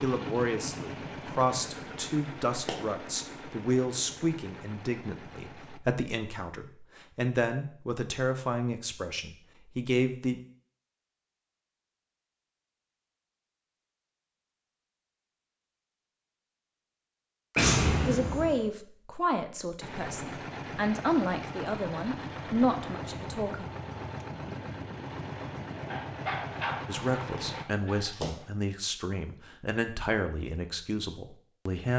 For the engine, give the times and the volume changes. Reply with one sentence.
You can hear the engine from 0.0 to 5.8 s, getting quieter; and from 19.8 to 27.6 s, at a steady volume.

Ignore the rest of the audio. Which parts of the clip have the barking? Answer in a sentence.
The barking can be heard from 25.9 to 28.4 s.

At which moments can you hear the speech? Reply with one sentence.
The speech can be heard from 0.0 to 10.4 s, from 18.1 to 23.6 s and from 26.9 to 31.9 s.